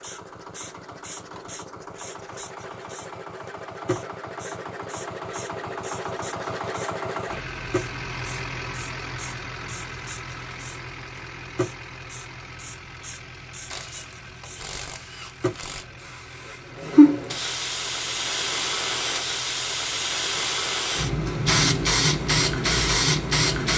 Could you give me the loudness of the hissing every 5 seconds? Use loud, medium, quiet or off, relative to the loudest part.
quiet, quiet, quiet, loud, loud.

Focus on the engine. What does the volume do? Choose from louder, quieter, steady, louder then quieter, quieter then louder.
louder then quieter.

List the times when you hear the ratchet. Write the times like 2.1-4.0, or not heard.
13.7-15.8.